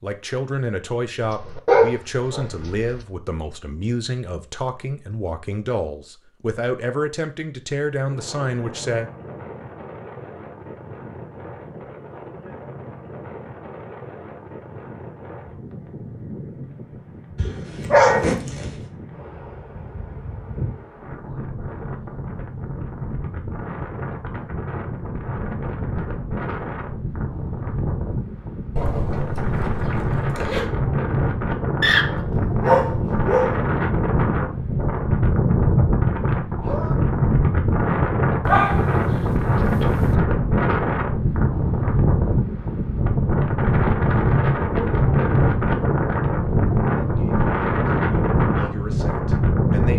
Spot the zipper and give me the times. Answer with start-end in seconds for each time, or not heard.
17.4-18.9, 28.8-30.6.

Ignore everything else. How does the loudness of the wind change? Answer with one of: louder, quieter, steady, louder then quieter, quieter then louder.
louder.